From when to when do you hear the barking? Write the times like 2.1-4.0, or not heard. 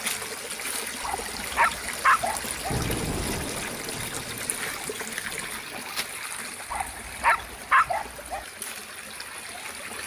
1.0-2.8, 6.7-8.4.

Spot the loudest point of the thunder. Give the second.
3 s.